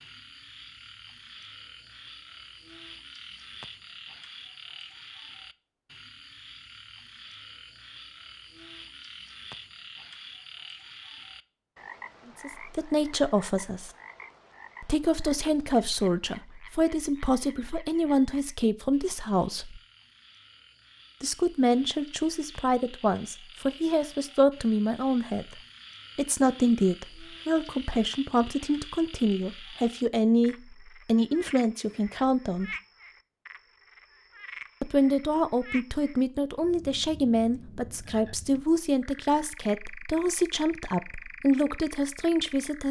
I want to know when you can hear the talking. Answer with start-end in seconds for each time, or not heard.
12.4-13.9, 14.8-19.8, 21.2-25.4, 26.1-32.7, 34.8-42.8.